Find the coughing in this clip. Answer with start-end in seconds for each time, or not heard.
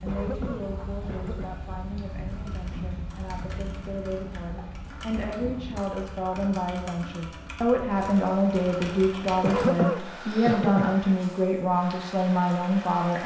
0.1-1.6, 5.1-5.5, 9.4-10.9.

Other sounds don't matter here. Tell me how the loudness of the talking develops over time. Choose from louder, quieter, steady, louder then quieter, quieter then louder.
louder.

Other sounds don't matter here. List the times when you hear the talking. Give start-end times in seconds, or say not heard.
0.0-13.2.